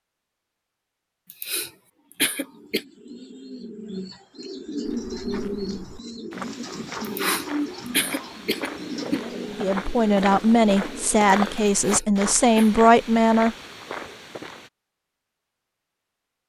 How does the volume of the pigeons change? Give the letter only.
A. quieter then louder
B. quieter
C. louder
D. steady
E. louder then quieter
E.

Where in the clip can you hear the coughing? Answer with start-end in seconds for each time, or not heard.
1.3-2.9, 7.0-9.2, 11.8-12.8.